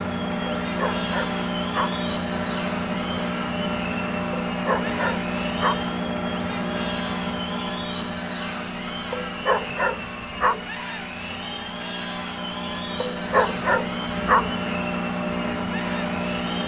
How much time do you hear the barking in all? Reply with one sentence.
You can hear the barking for 6 seconds altogether.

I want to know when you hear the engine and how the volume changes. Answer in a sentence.
The engine can be heard from 0.0 to 16.6 s, getting quieter then louder.